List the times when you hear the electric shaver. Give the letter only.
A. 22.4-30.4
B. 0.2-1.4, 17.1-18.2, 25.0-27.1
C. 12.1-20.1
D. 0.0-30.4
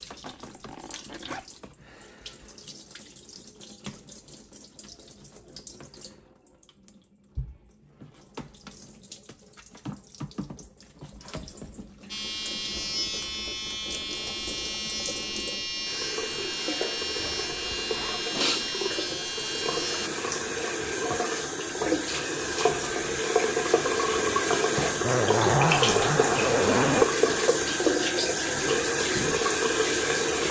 C.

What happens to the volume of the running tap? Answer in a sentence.
The volume of the running tap goes up.